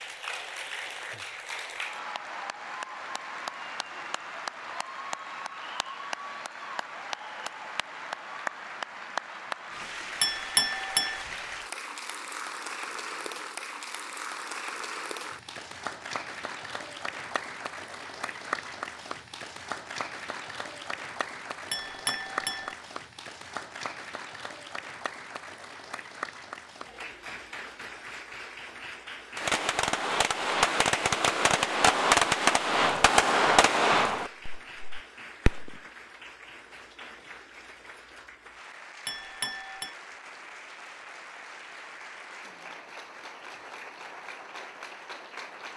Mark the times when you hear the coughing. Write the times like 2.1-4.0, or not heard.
not heard.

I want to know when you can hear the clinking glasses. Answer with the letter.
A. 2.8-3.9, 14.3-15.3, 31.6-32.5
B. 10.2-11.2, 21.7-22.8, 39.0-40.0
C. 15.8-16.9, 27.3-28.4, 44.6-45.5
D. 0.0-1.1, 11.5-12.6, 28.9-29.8
B.